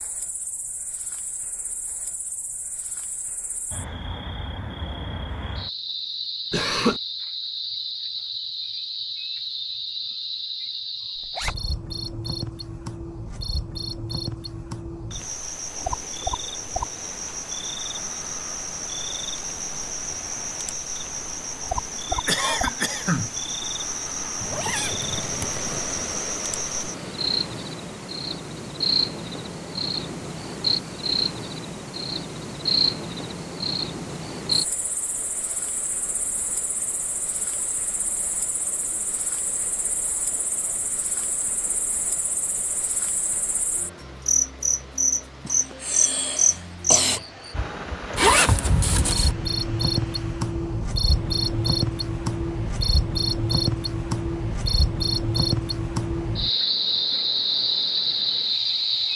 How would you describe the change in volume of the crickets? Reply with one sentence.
The loudness of the crickets goes up.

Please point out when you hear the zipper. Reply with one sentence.
The zipper can be heard from 11.2 to 11.6 s, from 24.4 to 25.9 s and from 48.1 to 49.4 s.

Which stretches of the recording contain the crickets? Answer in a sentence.
The crickets can be heard from 0.0 to 59.1 s.